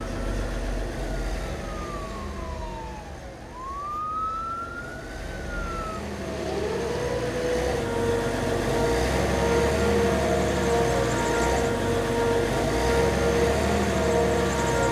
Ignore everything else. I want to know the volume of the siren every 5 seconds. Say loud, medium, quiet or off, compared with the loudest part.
medium, loud, loud.